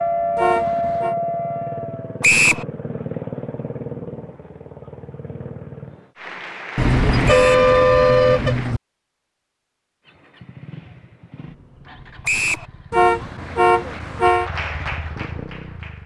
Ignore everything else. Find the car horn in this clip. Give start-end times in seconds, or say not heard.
0.3-1.1, 6.8-8.8, 12.9-14.5.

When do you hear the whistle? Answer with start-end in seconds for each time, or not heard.
2.2-2.6, 7.2-7.7, 12.2-12.7.